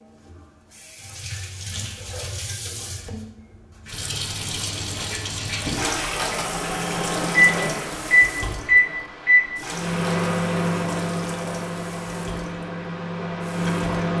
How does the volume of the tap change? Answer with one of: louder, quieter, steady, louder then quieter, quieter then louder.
louder then quieter.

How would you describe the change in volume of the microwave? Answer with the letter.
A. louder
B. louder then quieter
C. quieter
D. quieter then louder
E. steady
B.